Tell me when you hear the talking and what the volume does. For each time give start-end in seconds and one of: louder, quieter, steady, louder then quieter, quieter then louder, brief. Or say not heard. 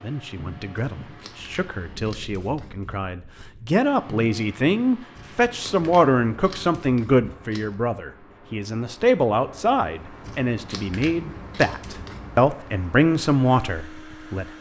0.0-14.5 louder.